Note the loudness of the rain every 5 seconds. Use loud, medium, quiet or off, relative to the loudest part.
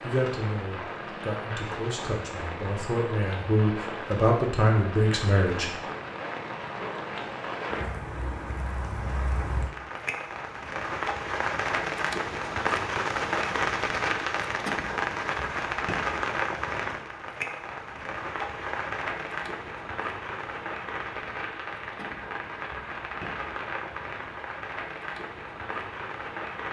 medium, medium, loud, loud, medium, medium.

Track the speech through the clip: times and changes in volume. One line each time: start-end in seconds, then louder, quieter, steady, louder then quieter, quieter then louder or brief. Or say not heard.
0.0-5.7 louder.